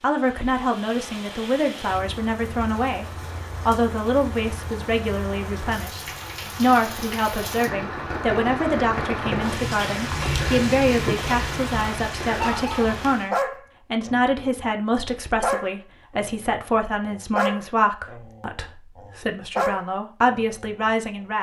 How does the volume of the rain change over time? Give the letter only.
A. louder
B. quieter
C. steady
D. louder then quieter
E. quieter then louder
A.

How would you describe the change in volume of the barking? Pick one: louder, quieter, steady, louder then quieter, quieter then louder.
quieter then louder.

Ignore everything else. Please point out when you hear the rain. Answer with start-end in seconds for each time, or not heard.
0.0-13.3.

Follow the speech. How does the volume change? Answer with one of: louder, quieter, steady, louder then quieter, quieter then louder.
steady.